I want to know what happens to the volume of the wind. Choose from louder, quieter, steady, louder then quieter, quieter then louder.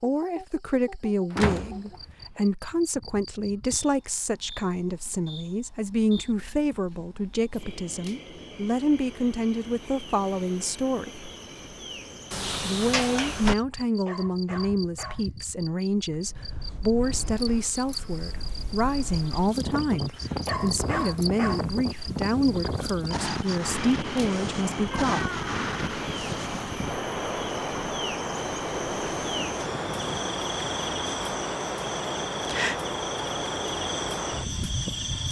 louder.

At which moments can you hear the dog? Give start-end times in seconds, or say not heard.
14.1-15.2, 20.4-22.1.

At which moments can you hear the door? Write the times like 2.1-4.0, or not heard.
1.3-2.4, 12.3-13.6, 24.9-26.0.